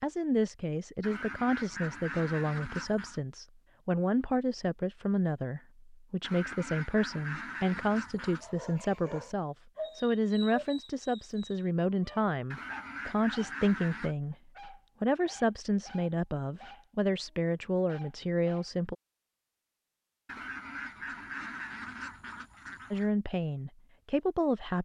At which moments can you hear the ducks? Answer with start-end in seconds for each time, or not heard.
1.0-3.2, 6.2-8.5, 12.5-14.2, 20.2-23.1.